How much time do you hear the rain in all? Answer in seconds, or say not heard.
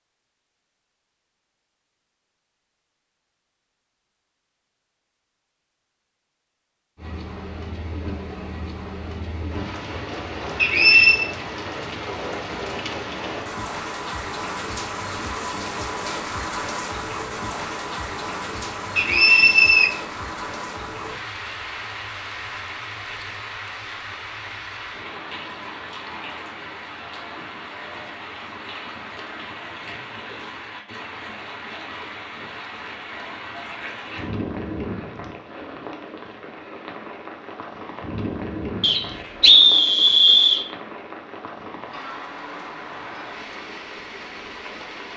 38 s.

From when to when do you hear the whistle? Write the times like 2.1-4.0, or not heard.
10.6-11.2, 18.9-19.9, 38.8-40.6.